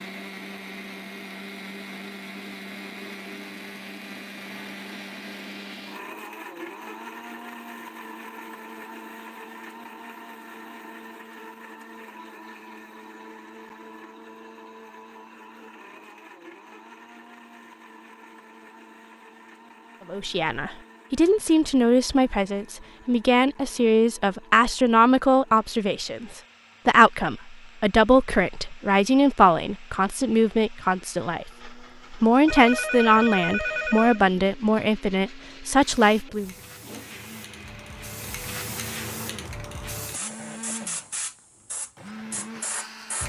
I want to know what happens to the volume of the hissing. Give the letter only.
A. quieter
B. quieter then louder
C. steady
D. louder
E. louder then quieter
D.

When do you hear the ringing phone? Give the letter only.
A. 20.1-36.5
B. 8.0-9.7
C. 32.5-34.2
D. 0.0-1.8
C.